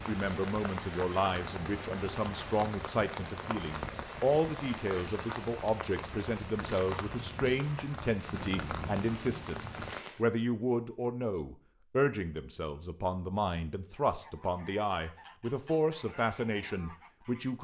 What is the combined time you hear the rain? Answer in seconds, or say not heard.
10 s.